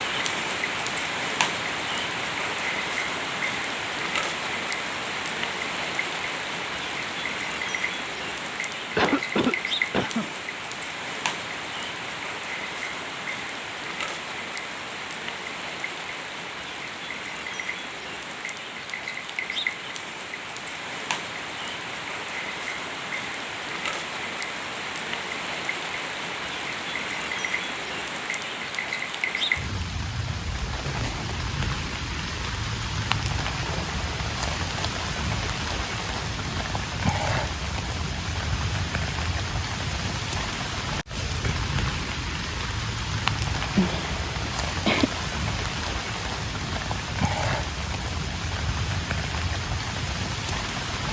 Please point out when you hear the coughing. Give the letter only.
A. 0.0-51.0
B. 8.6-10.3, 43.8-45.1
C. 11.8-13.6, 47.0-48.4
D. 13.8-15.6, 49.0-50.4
B.